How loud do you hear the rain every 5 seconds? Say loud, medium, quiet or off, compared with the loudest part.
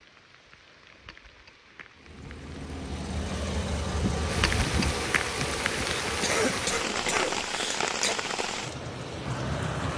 medium, loud.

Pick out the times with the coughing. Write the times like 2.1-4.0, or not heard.
5.4-8.2.